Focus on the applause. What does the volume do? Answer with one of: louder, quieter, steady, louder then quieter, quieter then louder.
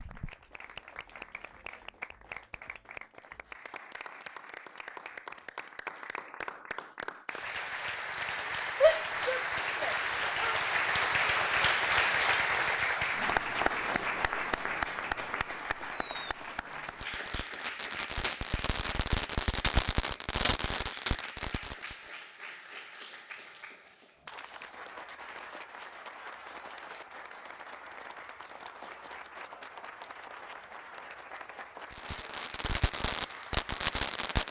louder then quieter.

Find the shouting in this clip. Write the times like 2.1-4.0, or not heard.
8.8-10.6.